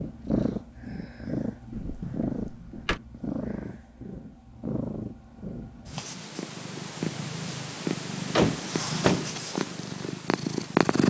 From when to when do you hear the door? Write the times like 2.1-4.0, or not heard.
1.7-3.0, 8.3-9.3.